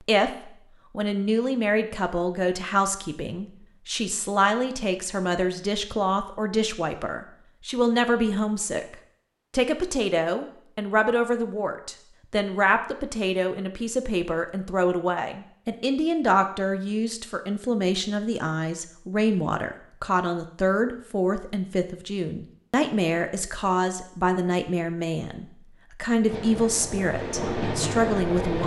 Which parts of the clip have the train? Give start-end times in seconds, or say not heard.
26.2-28.6.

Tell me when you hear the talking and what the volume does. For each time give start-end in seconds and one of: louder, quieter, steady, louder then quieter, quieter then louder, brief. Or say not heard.
0.1-28.6 steady.